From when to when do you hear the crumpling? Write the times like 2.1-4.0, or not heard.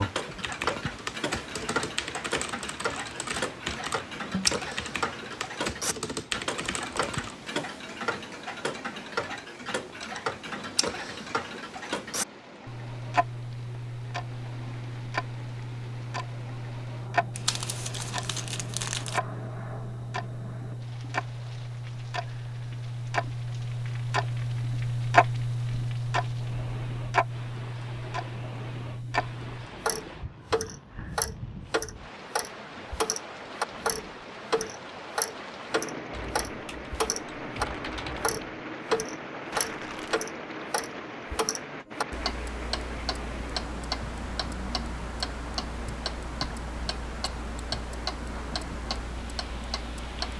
17.4-19.2, 39.5-40.2.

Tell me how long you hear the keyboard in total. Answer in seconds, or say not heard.
9 s.